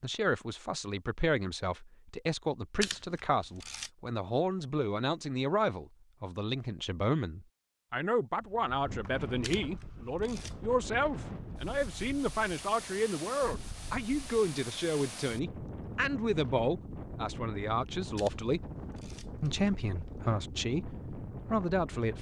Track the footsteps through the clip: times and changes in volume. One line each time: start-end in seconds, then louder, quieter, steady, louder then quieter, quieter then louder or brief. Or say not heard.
not heard.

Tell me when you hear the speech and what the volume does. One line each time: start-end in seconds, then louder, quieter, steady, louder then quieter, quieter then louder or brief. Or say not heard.
0.0-18.7 steady
19.4-22.1 brief.